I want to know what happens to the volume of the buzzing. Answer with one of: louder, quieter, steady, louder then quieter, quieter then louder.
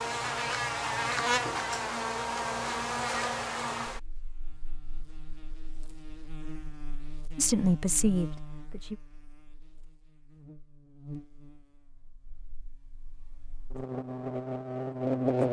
quieter then louder.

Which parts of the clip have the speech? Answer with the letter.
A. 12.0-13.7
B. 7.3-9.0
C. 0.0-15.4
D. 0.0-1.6
B.